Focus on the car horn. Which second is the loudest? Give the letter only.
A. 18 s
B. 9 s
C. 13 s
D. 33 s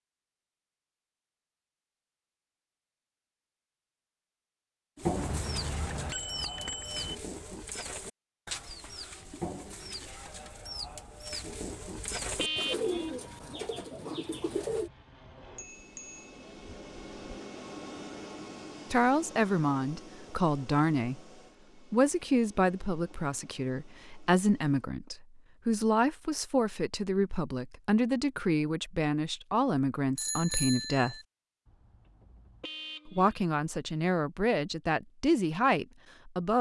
C.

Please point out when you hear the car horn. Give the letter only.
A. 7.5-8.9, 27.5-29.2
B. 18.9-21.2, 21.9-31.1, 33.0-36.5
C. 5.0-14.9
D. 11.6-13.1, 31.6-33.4
D.